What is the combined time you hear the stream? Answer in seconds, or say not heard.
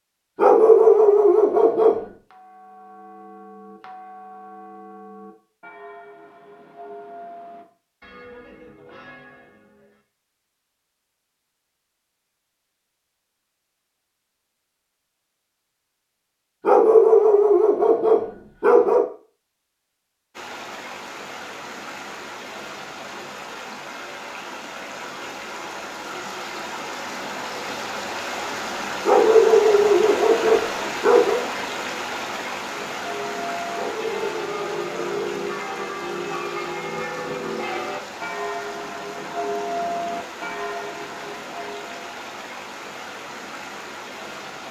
24 s.